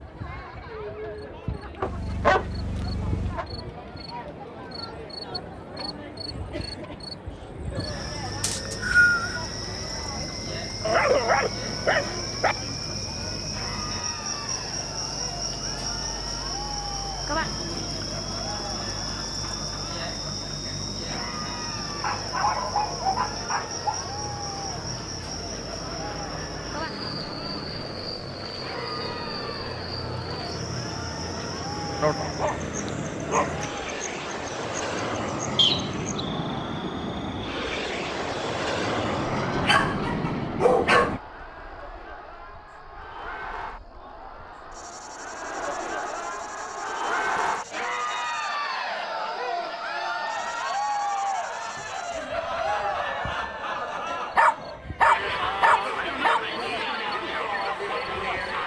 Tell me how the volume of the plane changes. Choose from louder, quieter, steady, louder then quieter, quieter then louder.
louder.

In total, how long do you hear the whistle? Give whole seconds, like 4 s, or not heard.
2 s.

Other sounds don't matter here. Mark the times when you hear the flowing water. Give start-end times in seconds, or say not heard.
not heard.